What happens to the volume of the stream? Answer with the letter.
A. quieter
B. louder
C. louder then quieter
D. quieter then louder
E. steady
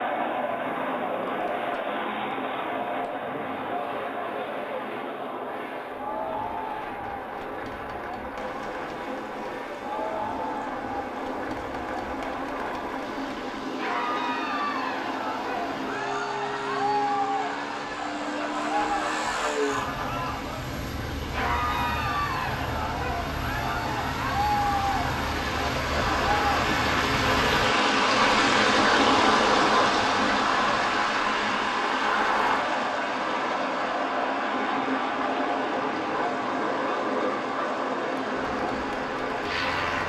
C.